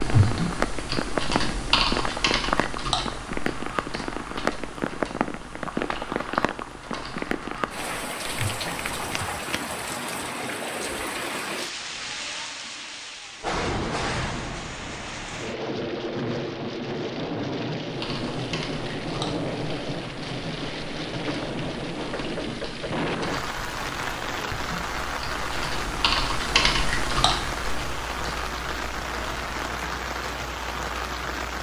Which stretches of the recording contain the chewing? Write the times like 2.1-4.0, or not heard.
not heard.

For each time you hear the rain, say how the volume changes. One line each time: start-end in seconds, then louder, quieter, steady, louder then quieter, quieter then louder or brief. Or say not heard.
0.0-31.5 steady.